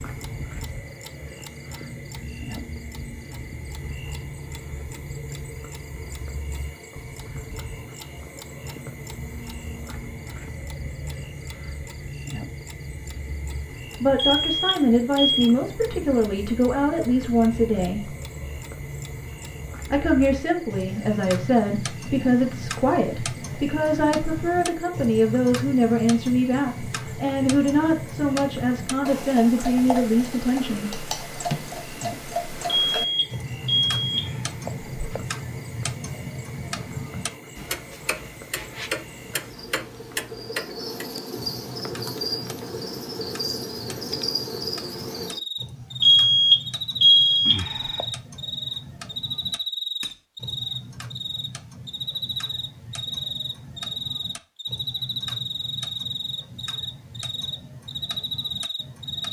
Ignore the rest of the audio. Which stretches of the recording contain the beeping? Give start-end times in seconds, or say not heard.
14.2-15.6, 32.9-35.2, 46.0-48.0.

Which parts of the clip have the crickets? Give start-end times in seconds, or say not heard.
0.0-59.2.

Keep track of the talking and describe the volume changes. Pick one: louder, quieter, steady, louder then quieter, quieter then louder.
steady.